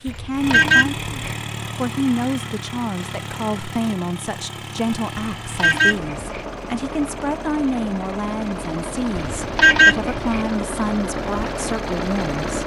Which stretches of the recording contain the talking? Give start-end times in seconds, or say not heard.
0.0-12.6.